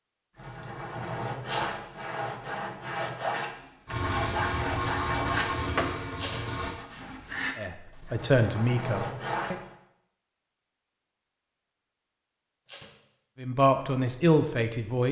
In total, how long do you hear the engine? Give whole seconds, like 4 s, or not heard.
3 s.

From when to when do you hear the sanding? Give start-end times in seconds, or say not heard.
0.3-9.7.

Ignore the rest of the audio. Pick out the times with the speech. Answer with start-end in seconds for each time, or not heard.
7.5-9.6, 13.4-15.0.